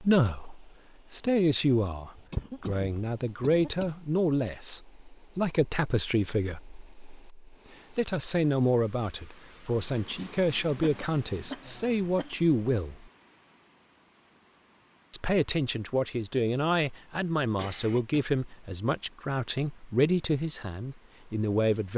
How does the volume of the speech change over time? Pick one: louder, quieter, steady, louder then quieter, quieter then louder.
steady.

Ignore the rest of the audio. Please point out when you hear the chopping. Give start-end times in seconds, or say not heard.
not heard.